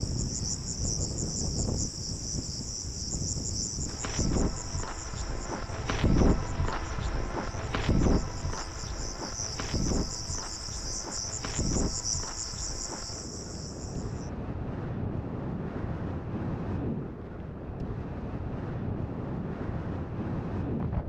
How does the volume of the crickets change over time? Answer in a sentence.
The loudness of the crickets goes down, then up.